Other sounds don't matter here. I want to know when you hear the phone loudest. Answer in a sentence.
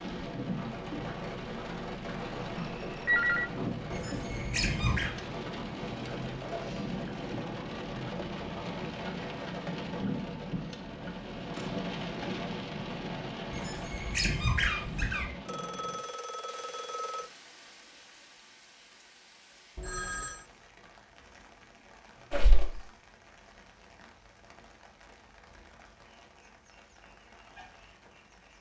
The volume of the phone peaks at 3 seconds.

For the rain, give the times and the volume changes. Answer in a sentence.
You can hear the rain from 0.0 to 28.5 s, getting quieter.